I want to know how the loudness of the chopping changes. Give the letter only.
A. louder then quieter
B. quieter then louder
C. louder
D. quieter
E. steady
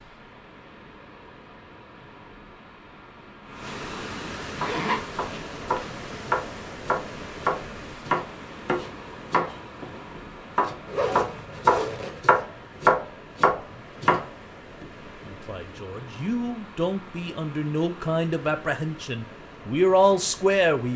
C.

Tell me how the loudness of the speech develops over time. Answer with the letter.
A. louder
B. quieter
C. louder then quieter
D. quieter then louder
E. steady
A.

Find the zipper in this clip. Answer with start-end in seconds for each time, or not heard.
4.5-6.0, 10.8-12.2.